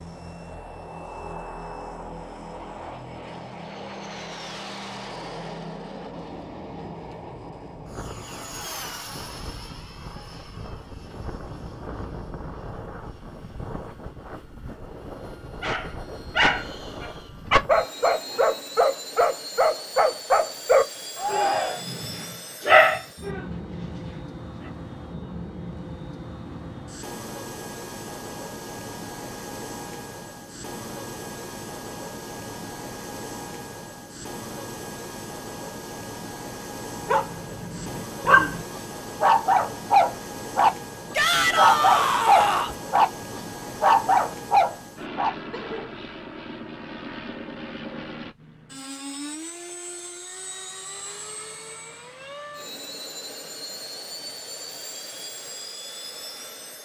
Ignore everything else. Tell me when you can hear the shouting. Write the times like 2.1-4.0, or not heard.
21.1-21.9, 41.1-42.8.